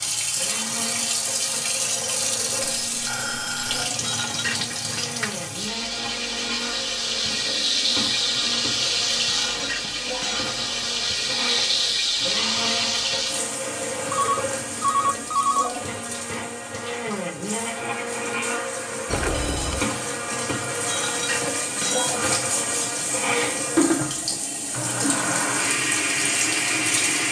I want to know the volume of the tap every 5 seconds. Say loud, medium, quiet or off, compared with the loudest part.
loud, loud, loud, quiet, medium, loud.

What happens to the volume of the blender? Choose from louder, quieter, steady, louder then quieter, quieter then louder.
louder.